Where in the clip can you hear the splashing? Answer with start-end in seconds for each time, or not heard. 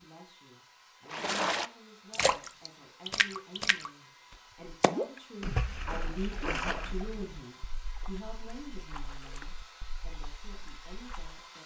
1.1-11.4.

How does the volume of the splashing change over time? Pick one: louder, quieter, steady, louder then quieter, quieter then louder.
quieter.